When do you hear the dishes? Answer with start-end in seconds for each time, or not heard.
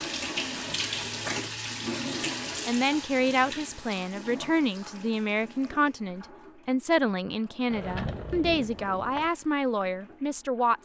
not heard.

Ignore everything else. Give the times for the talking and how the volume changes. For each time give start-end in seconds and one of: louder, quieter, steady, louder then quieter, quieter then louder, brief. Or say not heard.
2.6-10.7 steady.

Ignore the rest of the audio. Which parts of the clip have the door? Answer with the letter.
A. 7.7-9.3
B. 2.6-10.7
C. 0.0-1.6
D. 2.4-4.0
A.